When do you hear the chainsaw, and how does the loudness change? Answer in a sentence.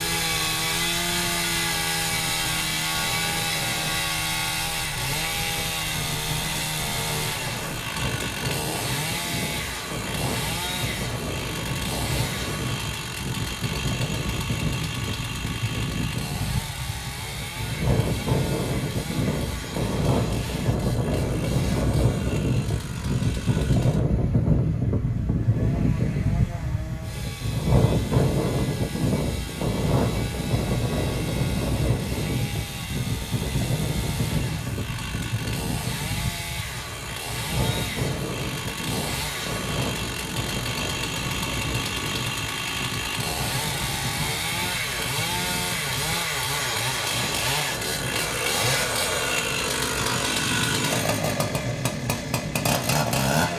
You can hear the chainsaw from 0.0 to 53.5 s, getting quieter then louder.